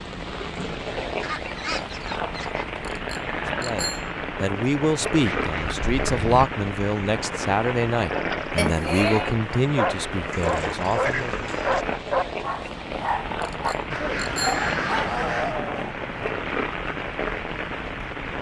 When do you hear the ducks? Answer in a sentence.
You can hear the ducks from 1.2 to 2.9 s, from 5.2 to 6.5 s, from 10.3 to 11.8 s and from 13.9 to 15.6 s.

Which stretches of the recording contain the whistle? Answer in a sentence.
You can't hear the whistle here.